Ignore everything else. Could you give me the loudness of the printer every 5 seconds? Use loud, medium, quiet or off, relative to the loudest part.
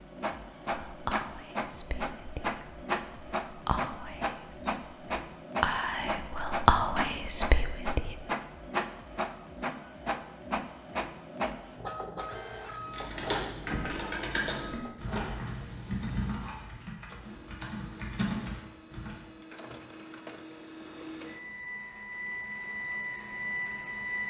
loud, loud, loud, medium, loud.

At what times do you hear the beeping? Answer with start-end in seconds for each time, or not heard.
not heard.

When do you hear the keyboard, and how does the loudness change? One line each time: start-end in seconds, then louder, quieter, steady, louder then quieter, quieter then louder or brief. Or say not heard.
12.8-19.2 quieter then louder.